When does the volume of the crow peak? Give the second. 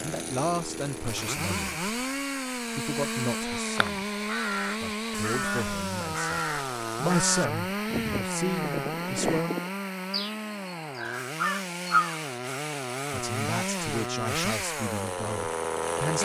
12 s.